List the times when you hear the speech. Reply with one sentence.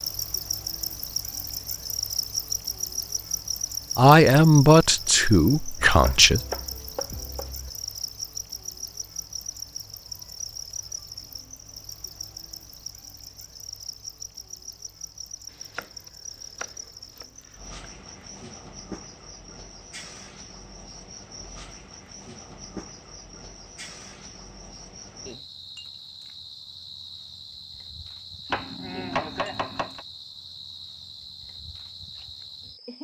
The speech can be heard from 4.0 to 6.4 s.